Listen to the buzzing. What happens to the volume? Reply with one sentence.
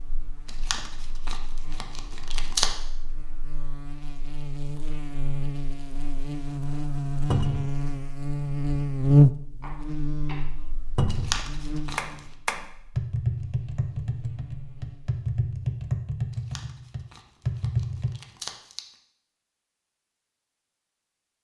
The loudness of the buzzing goes up, then down.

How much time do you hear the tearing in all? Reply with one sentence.
The tearing can be heard for 6 seconds in total.